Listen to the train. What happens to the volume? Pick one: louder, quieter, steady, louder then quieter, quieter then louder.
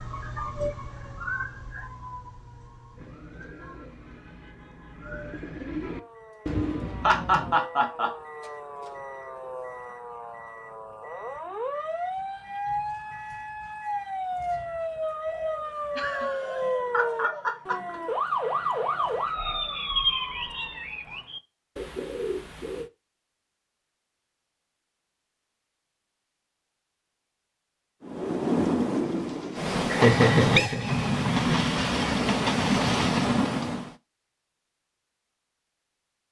steady.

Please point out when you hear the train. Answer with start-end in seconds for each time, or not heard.
28.0-34.0.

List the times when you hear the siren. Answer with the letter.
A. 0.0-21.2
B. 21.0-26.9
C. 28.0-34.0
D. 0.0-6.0
A.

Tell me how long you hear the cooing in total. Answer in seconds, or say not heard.
12 s.